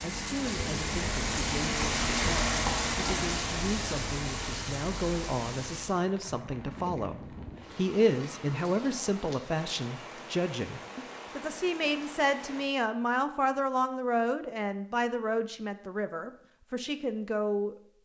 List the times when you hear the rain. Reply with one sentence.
The rain can be heard from 0.0 to 12.7 s.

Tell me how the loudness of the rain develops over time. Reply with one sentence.
The loudness of the rain goes down.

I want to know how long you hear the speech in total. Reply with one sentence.
The speech can be heard for 18 seconds in total.